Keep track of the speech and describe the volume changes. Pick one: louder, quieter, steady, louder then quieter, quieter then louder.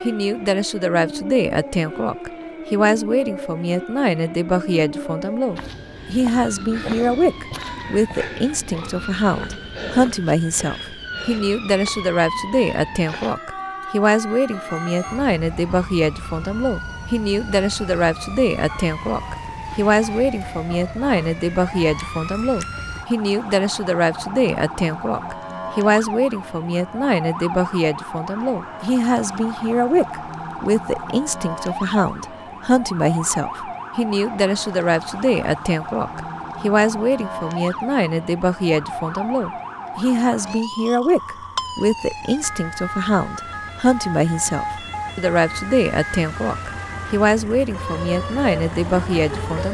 steady.